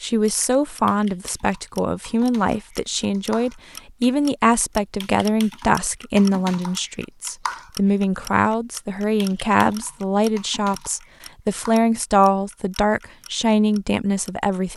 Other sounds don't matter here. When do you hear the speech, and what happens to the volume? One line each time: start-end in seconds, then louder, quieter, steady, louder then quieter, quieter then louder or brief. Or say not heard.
0.0-14.7 steady.